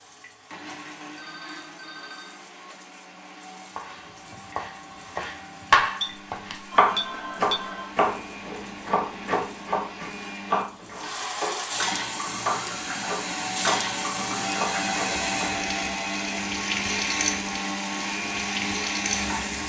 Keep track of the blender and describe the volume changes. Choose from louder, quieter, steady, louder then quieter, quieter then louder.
louder.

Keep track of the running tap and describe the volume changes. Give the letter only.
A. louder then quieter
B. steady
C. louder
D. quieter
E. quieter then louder
C.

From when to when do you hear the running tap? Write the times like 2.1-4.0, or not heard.
0.0-19.6.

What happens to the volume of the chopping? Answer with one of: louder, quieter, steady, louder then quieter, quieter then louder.
quieter.